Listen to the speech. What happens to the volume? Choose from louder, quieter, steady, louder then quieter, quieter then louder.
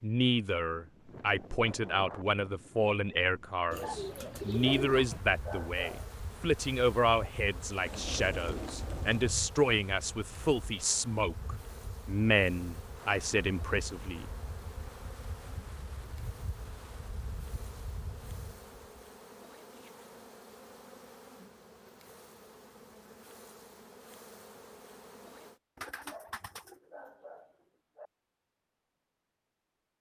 steady.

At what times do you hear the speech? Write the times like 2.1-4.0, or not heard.
0.0-14.2.